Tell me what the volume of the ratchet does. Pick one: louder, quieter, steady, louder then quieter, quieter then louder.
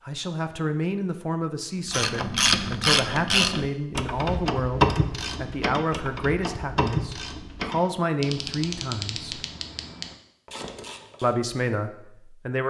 quieter.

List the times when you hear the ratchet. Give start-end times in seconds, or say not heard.
1.9-11.3.